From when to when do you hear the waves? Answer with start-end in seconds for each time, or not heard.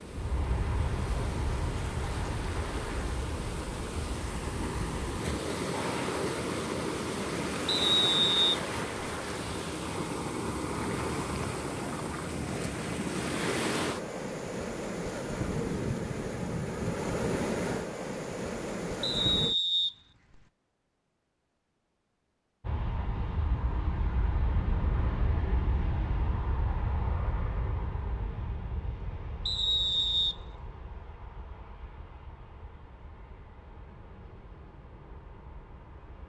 0.0-19.6.